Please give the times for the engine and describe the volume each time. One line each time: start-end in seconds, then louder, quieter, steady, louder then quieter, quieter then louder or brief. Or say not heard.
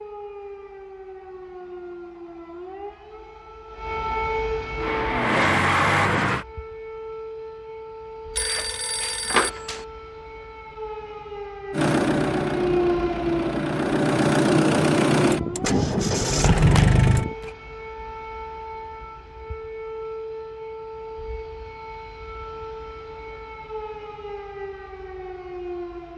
4.8-6.5 brief
11.7-17.4 louder.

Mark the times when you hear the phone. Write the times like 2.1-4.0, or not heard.
8.3-9.8, 16.4-17.5.